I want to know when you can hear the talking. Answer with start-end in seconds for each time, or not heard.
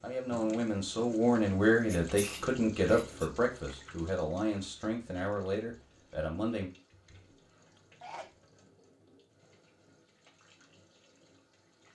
0.0-6.7.